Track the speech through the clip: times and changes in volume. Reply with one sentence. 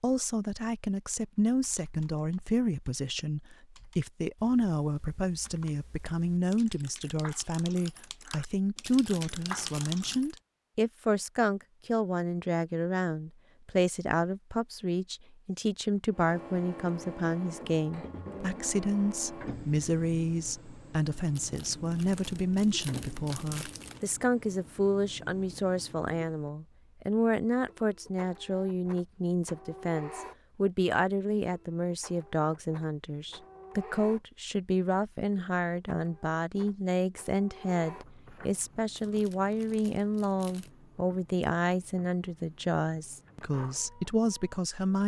You can hear the speech from 0.0 to 45.0 s, at a steady volume.